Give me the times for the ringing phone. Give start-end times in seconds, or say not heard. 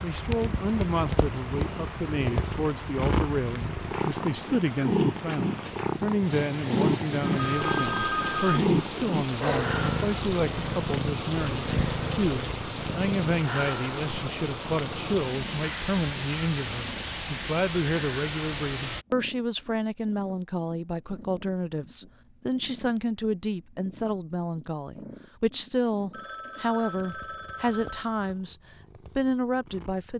7.2-8.6, 26.1-28.4.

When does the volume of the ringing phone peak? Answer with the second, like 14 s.
8 s.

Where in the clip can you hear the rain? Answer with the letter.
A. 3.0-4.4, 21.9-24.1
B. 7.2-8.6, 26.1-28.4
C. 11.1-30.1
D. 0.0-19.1
D.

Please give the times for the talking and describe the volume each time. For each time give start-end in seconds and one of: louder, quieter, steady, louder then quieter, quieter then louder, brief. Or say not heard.
0.0-30.1 steady.